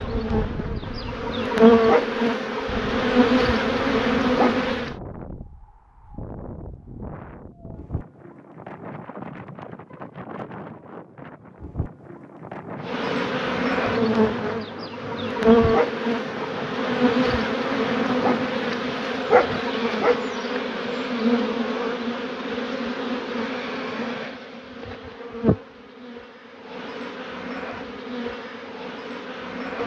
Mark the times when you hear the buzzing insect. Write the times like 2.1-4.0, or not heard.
0.0-5.0, 12.8-29.8.